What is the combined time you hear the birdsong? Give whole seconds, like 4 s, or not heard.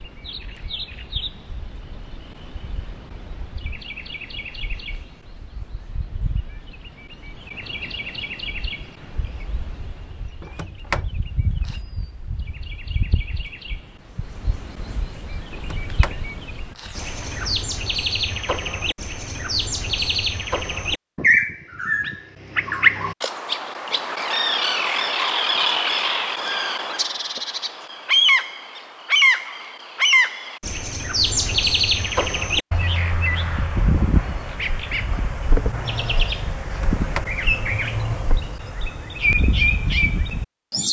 41 s.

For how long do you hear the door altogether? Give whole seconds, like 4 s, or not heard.
4 s.